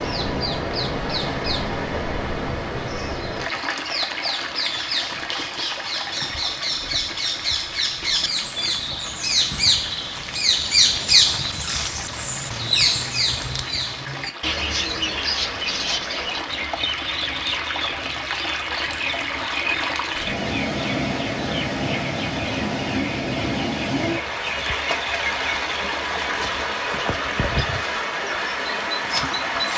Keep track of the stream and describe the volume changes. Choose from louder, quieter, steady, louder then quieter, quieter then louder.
quieter then louder.